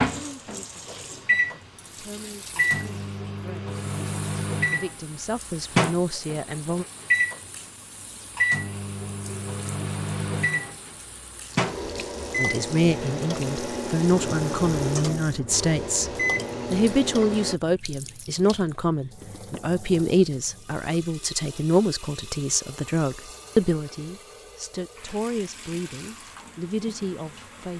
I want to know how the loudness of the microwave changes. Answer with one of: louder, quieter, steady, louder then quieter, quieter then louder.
steady.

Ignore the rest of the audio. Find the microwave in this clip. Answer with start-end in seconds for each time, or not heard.
0.0-17.6.